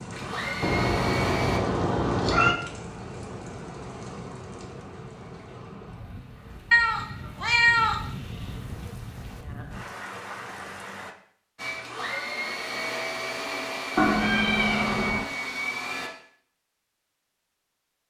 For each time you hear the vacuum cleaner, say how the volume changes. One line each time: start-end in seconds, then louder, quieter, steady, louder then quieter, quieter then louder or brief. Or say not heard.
0.1-1.6 brief
11.6-16.1 steady.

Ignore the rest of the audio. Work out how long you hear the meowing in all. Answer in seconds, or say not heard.
5 s.